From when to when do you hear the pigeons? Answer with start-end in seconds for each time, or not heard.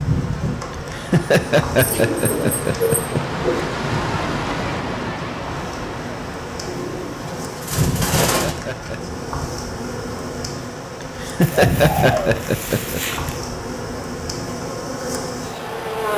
1.8-3.6, 6.7-8.6, 11.4-13.4.